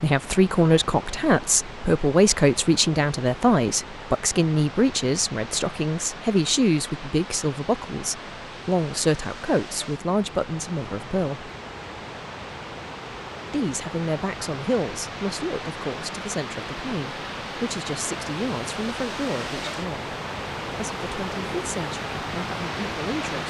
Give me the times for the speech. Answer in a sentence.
The speech can be heard from 0.0 to 11.5 s, from 13.5 to 20.1 s and from 20.8 to 23.4 s.